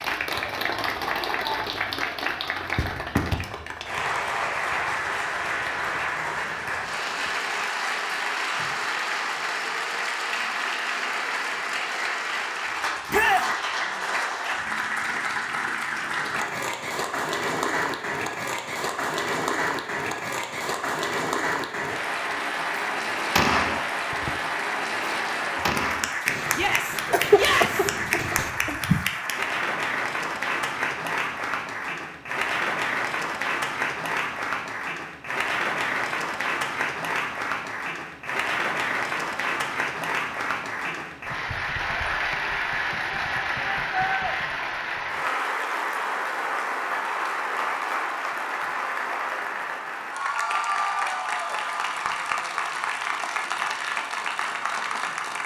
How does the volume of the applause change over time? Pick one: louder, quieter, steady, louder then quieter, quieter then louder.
steady.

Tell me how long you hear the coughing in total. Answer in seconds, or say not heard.
2 s.